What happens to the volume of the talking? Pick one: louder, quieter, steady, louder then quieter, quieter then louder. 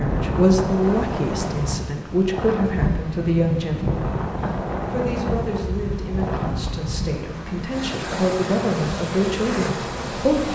quieter then louder.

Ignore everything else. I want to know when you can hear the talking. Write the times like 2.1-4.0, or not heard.
0.0-10.5.